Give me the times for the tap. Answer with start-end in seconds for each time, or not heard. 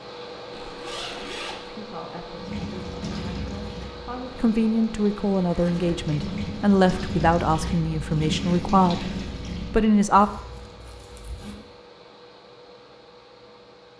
2.4-9.9.